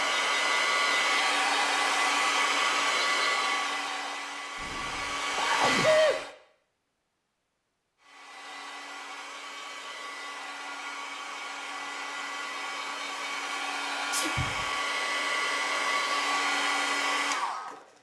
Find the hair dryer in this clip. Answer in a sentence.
The hair dryer can be heard from 0.0 to 6.3 s and from 8.0 to 17.9 s.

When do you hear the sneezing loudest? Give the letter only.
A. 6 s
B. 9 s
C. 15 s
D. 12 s
A.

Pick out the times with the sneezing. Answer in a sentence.
You can hear the sneezing from 4.6 to 6.2 s and from 14.1 to 14.7 s.